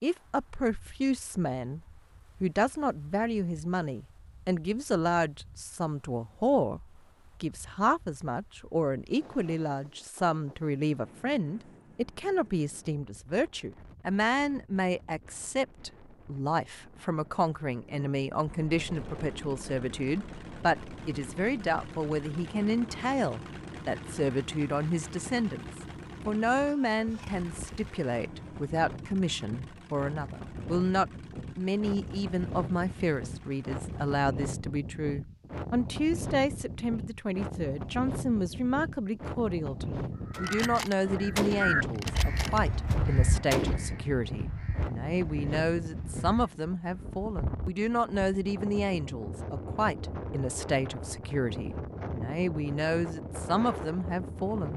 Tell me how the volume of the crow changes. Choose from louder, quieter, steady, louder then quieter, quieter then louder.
quieter.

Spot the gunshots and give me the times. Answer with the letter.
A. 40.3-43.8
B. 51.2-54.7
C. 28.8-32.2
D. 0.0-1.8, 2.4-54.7
A.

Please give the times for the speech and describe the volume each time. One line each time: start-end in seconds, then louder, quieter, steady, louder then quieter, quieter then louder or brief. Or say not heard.
0.0-1.8 brief
2.4-54.7 steady.